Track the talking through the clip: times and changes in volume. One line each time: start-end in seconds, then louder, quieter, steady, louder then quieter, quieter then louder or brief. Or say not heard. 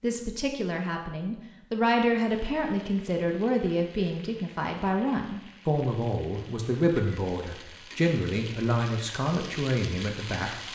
0.0-10.6 steady.